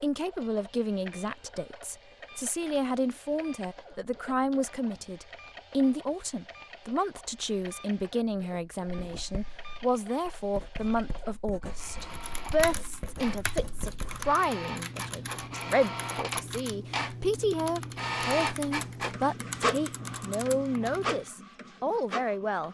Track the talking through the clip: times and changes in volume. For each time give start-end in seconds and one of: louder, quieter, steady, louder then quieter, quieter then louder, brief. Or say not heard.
0.0-22.6 steady.